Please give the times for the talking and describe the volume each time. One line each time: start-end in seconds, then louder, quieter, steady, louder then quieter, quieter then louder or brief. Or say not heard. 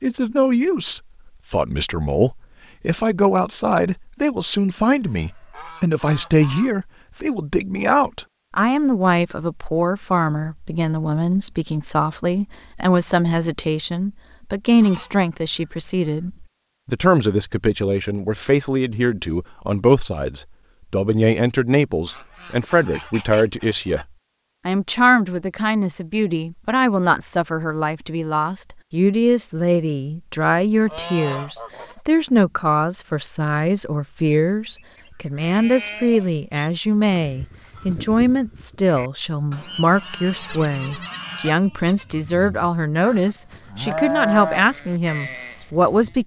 0.0-24.1 steady
24.6-46.2 steady.